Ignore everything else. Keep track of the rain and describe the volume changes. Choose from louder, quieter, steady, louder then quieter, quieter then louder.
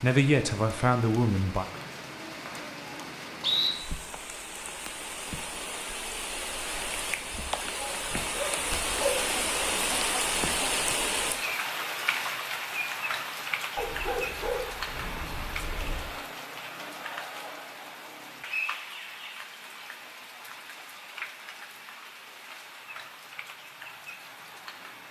louder then quieter.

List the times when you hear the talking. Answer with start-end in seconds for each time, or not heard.
0.0-1.6.